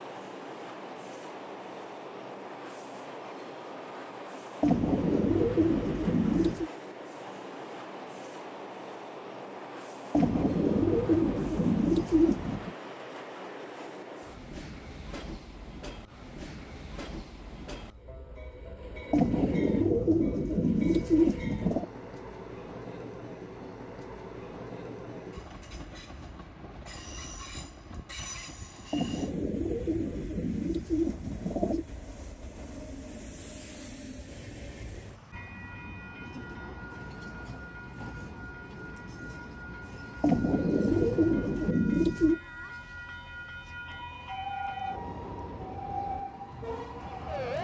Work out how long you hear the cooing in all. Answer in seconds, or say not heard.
13 s.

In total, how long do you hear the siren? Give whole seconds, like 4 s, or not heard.
4 s.